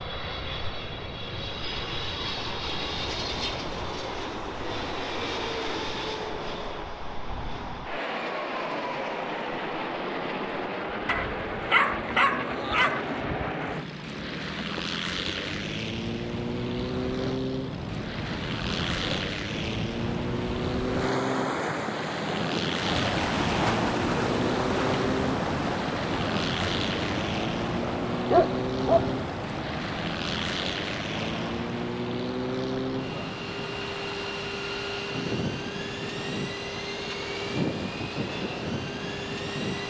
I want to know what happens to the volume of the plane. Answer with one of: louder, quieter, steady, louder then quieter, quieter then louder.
steady.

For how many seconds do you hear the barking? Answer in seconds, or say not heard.
3 s.